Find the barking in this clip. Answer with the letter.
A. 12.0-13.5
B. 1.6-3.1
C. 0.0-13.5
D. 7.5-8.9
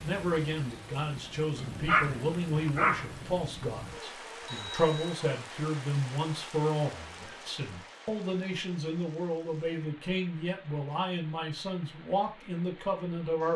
B.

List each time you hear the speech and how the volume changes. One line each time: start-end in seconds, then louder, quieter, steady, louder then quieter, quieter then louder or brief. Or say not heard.
0.0-13.5 steady.